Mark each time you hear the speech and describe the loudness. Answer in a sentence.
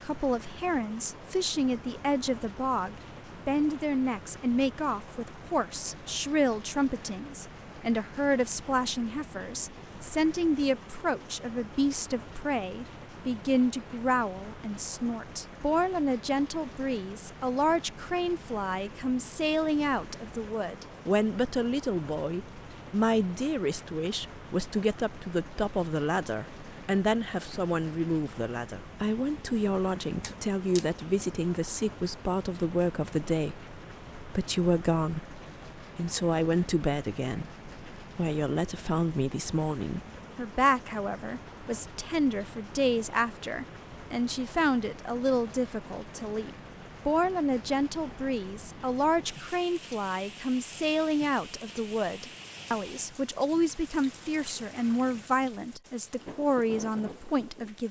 The speech can be heard from 0.0 to 57.8 s, at a steady volume.